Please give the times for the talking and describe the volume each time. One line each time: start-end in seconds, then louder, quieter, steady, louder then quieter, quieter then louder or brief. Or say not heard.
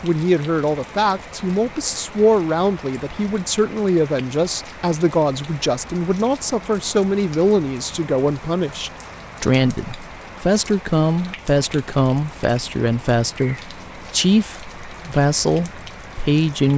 0.0-16.7 steady.